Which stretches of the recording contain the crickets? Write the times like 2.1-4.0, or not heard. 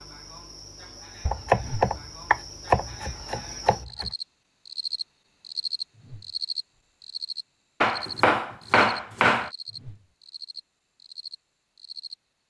0.0-12.2.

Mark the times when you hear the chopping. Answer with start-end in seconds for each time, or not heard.
1.2-4.1, 7.8-9.5.